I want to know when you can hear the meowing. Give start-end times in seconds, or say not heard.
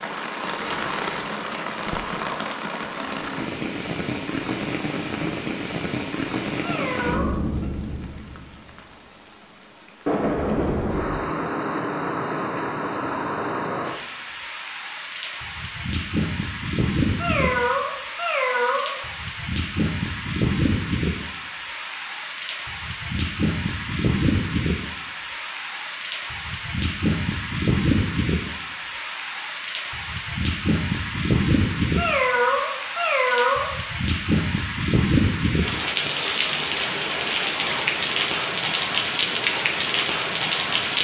6.6-7.7, 17.1-18.9, 31.9-33.7.